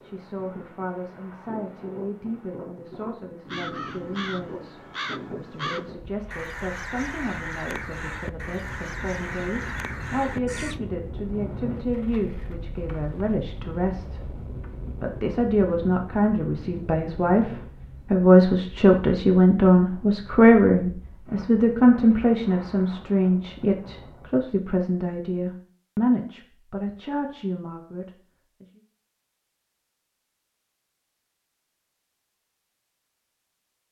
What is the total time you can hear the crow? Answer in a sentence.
The crow can be heard for 7 seconds in total.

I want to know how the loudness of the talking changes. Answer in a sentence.
The volume of the talking goes up, then down.